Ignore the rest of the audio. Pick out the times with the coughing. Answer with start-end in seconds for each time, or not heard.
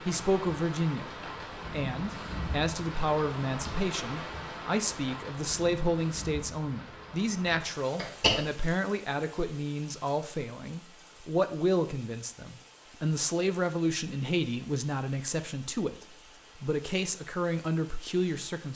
8.0-8.4.